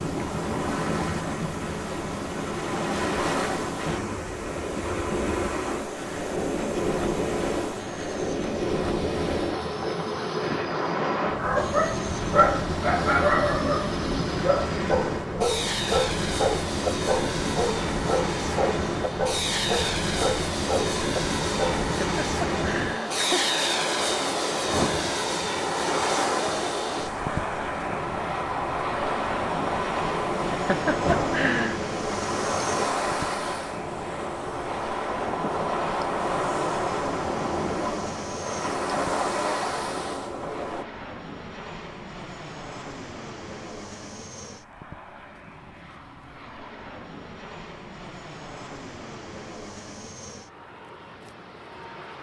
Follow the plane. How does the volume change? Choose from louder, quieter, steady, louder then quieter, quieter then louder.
louder then quieter.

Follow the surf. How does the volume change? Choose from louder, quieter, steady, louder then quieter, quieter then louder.
steady.